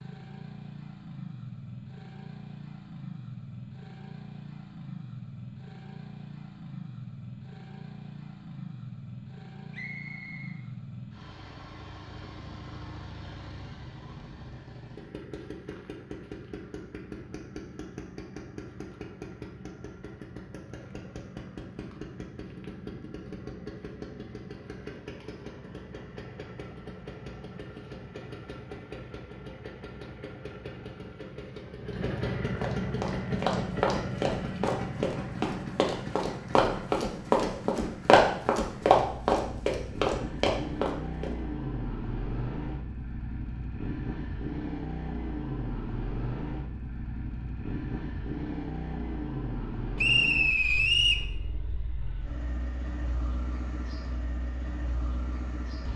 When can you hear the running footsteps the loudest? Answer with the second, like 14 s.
38 s.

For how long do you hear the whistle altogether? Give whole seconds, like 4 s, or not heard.
2 s.